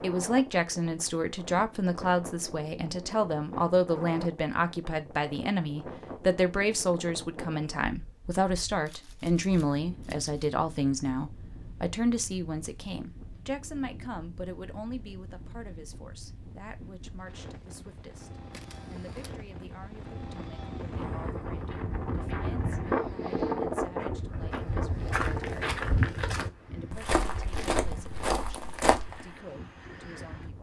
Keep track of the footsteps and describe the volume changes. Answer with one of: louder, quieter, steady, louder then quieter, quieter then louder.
louder.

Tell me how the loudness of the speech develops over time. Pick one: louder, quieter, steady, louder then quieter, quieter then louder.
quieter.